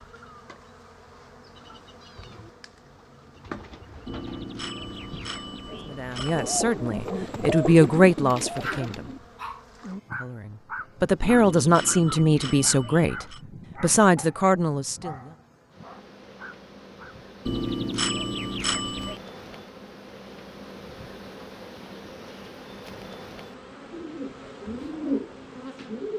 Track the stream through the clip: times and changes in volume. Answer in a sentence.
The stream can't be heard in this clip.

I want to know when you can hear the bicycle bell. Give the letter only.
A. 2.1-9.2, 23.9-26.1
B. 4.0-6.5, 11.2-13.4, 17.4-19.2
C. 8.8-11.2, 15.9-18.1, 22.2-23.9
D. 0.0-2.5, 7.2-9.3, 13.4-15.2
B.